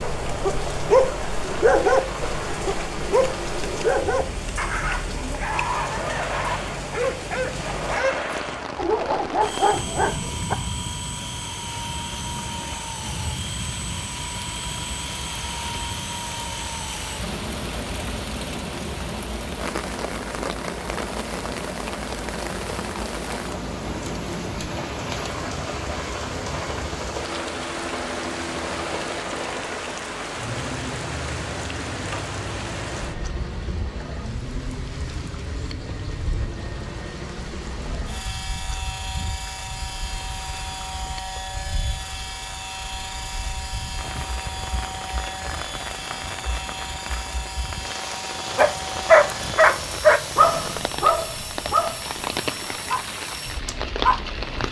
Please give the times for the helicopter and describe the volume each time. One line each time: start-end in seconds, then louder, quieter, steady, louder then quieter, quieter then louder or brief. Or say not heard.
0.0-54.6 steady.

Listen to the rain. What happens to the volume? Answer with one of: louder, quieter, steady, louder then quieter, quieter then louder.
quieter then louder.